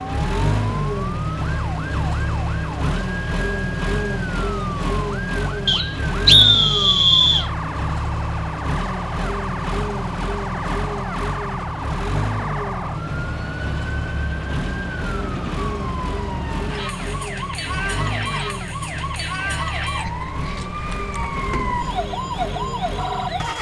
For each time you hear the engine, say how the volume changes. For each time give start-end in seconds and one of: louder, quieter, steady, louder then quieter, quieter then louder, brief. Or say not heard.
0.0-23.5 quieter.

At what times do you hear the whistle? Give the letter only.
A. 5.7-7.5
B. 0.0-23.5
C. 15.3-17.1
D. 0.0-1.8
A.